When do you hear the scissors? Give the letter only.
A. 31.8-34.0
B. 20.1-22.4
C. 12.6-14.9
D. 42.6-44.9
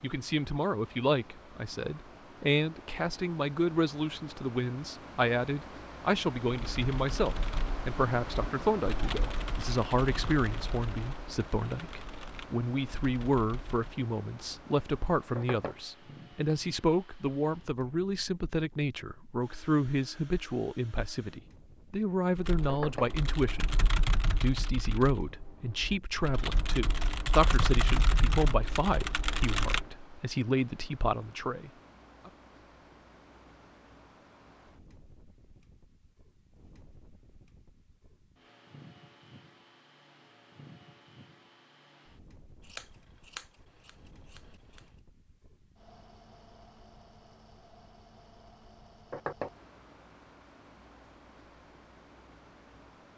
D.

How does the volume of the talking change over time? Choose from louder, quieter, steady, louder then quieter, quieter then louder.
steady.